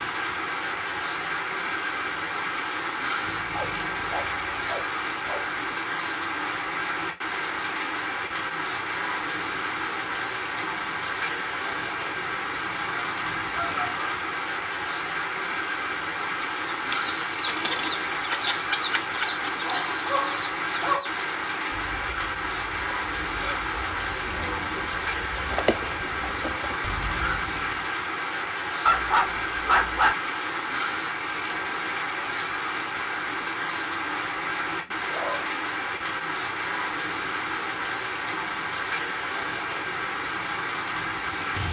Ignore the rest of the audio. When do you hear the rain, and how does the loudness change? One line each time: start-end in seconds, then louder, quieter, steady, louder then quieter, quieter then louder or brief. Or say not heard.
0.0-41.6 steady.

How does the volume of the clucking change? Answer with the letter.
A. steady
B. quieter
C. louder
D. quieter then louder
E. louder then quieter
D.